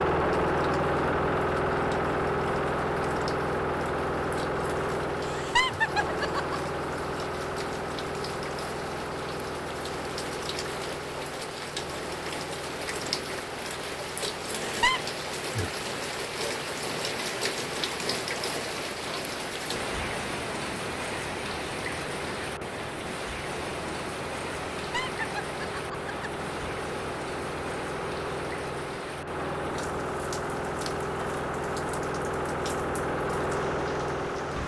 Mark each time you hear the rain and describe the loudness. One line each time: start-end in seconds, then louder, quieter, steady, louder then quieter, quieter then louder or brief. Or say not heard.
0.0-34.6 louder then quieter.